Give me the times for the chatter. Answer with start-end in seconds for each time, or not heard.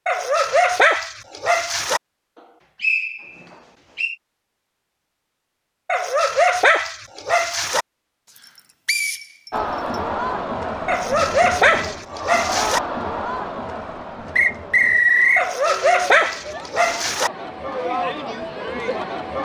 9.5-19.4.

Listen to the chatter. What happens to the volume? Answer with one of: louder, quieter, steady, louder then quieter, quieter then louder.
quieter then louder.